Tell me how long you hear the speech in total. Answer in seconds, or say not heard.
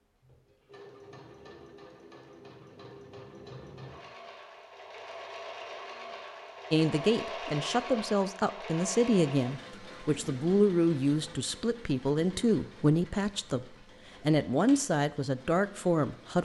10 s.